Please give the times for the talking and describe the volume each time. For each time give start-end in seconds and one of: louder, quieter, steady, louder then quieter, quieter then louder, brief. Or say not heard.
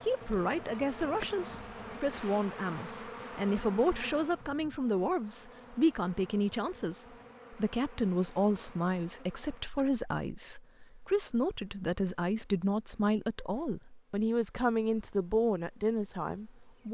0.0-16.9 steady.